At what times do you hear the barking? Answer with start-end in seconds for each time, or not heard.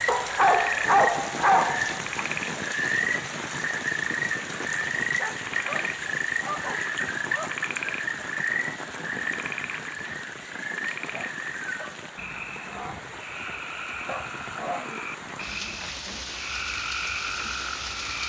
0.1-2.2, 5.0-7.5, 11.1-12.0, 14.1-16.2.